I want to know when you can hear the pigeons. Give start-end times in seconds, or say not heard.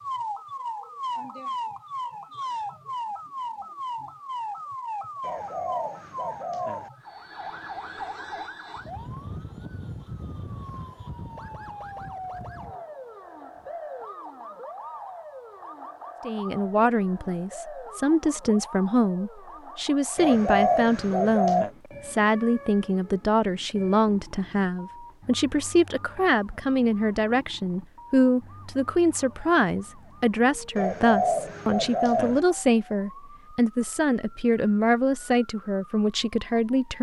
5.2-6.9, 20.1-21.7, 30.8-32.4.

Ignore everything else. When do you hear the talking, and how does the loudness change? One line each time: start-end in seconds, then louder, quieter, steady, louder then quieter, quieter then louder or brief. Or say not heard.
16.2-36.9 steady.